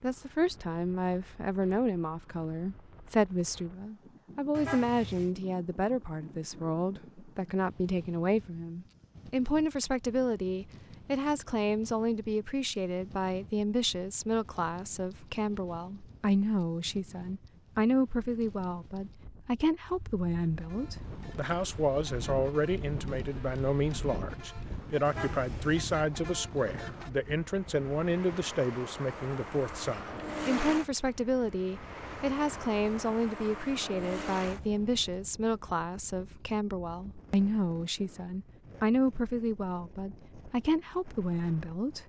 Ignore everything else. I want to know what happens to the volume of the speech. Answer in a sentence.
The loudness of the speech stays about the same.